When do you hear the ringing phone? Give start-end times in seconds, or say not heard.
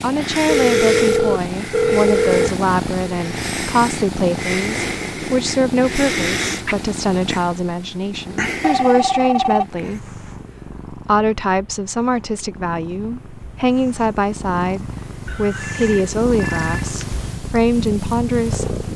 0.5-2.5, 8.6-9.7, 15.2-17.1.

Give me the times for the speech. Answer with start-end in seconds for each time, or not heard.
0.0-10.0, 10.9-18.8.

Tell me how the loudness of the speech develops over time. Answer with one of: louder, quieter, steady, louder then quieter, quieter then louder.
steady.